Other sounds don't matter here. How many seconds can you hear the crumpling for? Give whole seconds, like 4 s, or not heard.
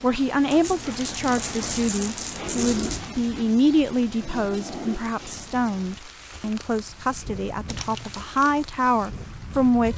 3 s.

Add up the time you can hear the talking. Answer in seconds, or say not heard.
10 s.